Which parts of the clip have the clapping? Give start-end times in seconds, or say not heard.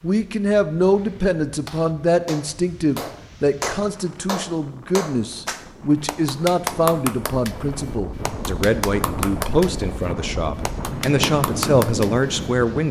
0.9-12.3.